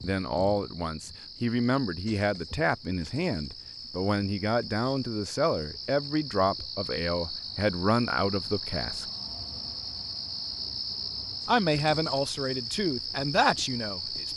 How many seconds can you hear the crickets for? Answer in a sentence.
You can hear the crickets for 14 seconds altogether.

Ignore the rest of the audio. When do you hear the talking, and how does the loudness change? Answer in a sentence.
The talking can be heard from 0.0 to 9.1 s, at a steady volume; and briefly from 11.4 to 14.3 s.